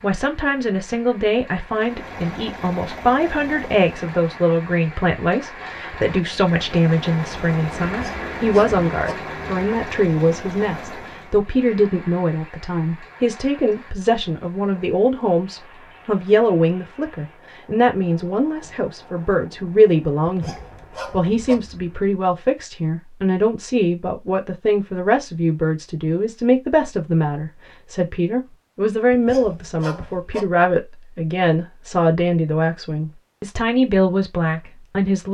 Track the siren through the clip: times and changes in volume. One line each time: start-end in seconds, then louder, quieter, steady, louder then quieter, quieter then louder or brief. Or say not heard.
not heard.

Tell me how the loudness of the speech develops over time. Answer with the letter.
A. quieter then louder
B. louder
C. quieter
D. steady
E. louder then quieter
D.